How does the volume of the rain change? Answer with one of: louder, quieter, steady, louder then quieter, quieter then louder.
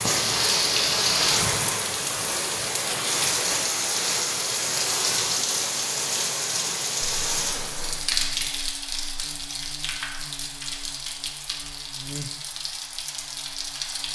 quieter.